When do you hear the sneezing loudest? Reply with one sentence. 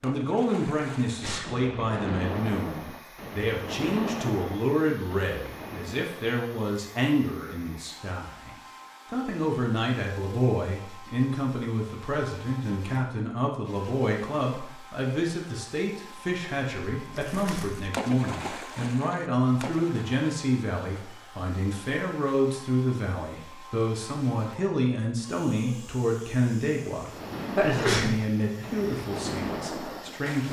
The volume of the sneezing peaks at 28 seconds.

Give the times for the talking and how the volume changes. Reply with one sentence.
You can hear the talking from 0.0 to 30.4 s, at a steady volume.